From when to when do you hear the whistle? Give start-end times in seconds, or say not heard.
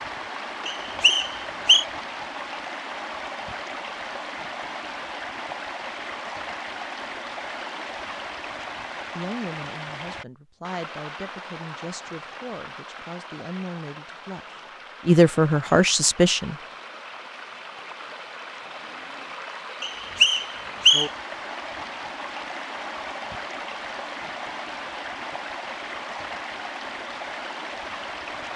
0.7-1.9, 19.8-21.1.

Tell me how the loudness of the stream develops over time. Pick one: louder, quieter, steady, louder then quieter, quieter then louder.
quieter then louder.